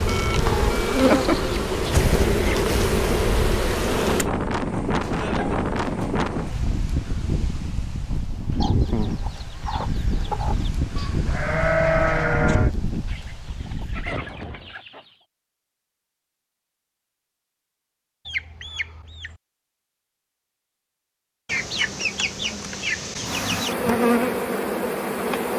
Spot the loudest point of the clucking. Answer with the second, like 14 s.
1 s.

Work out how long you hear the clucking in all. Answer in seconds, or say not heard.
11 s.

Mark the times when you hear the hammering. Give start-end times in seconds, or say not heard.
not heard.